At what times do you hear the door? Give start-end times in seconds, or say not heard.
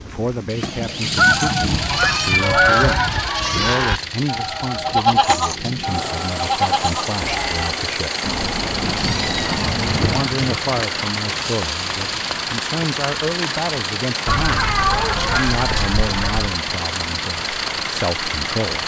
not heard.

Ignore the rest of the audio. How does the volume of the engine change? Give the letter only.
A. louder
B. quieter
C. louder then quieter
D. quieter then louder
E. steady
E.